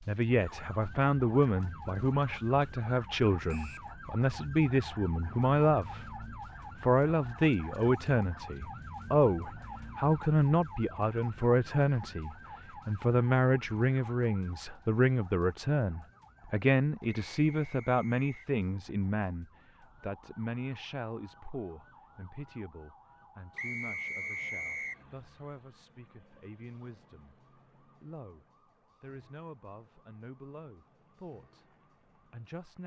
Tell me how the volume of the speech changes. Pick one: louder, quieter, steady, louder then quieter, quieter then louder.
quieter.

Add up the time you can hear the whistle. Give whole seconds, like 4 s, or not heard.
3 s.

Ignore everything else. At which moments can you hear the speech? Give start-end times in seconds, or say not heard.
0.1-32.8.